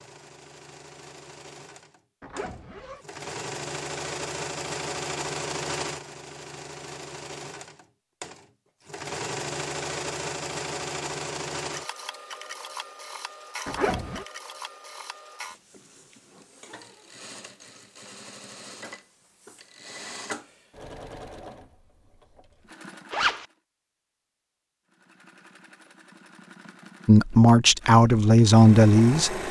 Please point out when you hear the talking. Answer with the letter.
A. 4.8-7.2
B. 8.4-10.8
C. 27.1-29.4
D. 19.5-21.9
C.